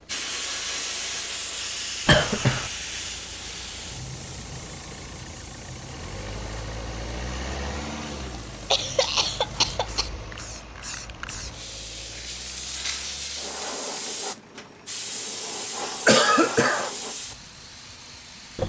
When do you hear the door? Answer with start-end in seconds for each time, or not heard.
not heard.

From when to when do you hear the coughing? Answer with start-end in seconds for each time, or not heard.
2.0-2.7, 8.7-10.1, 16.1-16.9.